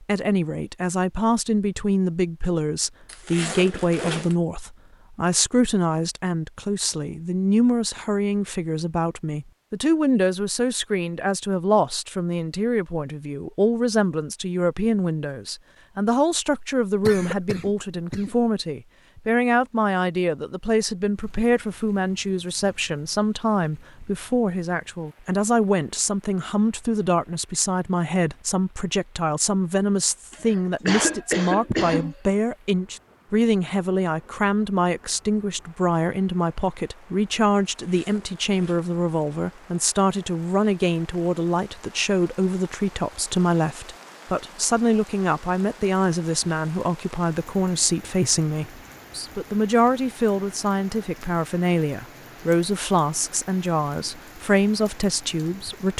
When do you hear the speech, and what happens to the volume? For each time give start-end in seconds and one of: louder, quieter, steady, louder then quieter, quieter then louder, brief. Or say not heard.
0.0-55.9 steady.